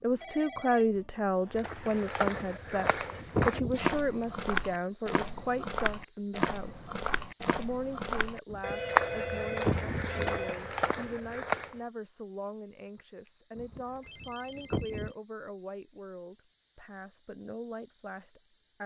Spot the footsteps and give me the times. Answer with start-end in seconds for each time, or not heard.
1.5-11.8.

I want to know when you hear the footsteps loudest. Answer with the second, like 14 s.
9 s.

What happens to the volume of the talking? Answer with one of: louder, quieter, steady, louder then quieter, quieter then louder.
quieter.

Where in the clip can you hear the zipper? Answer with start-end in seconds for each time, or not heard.
2.2-4.0, 8.5-10.3, 13.6-15.2.